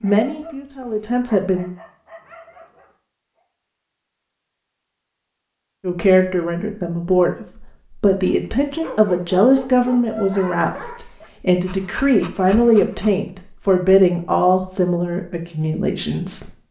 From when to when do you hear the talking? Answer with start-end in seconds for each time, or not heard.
0.0-1.7, 5.8-16.5.